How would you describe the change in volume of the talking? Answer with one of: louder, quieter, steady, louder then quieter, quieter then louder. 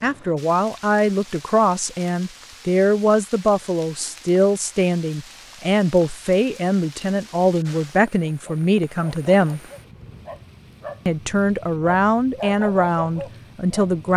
steady.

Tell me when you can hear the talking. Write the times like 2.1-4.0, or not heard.
0.0-9.6, 11.1-14.1.